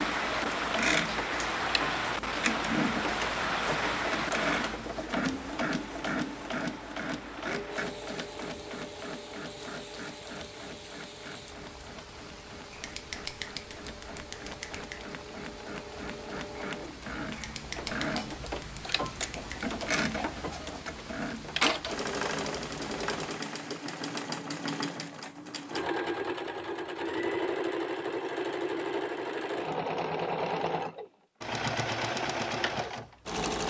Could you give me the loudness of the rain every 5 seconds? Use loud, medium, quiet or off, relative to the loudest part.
loud, quiet, quiet, quiet, quiet, off, off.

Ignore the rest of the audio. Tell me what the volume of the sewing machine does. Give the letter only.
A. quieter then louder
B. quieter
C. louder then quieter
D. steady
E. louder
A.